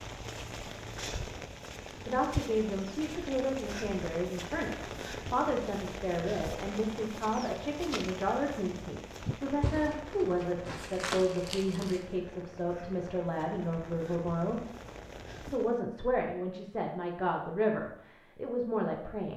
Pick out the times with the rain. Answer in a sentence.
The rain can be heard from 0.0 to 15.8 s.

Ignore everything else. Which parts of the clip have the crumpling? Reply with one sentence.
The crumpling can be heard from 9.6 to 12.0 s.